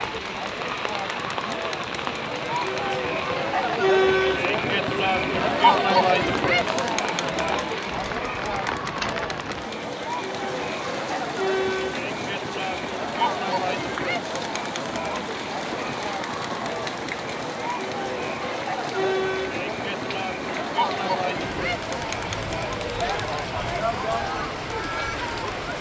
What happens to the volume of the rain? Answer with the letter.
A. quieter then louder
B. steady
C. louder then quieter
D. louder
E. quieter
B.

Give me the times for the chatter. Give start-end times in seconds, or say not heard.
0.0-25.7.